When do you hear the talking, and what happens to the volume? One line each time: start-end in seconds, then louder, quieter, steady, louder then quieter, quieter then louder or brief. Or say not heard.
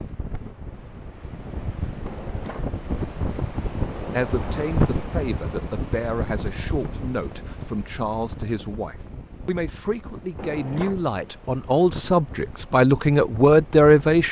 4.1-14.2 louder.